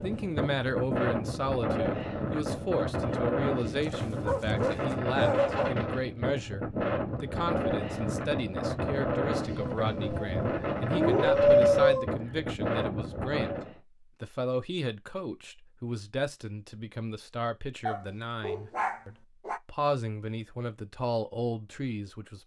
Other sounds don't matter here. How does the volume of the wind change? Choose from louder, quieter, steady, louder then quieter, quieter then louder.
steady.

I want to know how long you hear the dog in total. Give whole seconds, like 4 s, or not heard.
6 s.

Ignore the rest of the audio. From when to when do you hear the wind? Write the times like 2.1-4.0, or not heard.
0.0-13.8.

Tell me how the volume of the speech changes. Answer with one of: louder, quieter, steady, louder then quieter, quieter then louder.
steady.